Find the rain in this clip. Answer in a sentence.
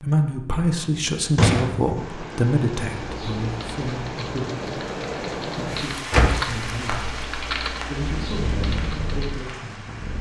The rain can be heard from 1.9 to 10.1 s.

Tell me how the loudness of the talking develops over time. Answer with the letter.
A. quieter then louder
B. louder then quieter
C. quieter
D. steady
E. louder
C.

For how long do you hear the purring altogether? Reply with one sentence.
The purring can be heard for 2 seconds in total.